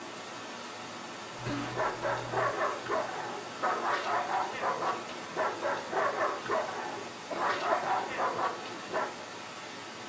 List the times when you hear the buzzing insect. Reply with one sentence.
The buzzing insect can't be heard in this clip.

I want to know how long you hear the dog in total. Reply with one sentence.
The dog can be heard for 8 seconds in total.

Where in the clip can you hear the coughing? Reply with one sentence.
The coughing can be heard from 1.4 to 2.5 s and from 7.3 to 8.1 s.